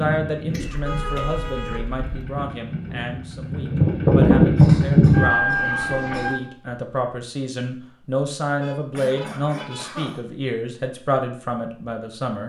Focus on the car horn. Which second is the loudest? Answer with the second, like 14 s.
1 s.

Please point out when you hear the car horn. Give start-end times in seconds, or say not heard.
0.7-2.4, 8.6-9.8.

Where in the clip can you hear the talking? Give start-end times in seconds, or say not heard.
0.0-12.4.